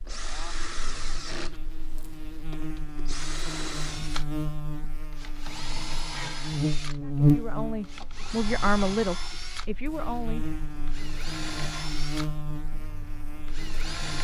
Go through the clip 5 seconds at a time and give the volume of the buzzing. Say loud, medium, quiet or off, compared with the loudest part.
medium, loud, medium.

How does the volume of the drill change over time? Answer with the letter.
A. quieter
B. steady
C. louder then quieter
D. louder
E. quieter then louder
B.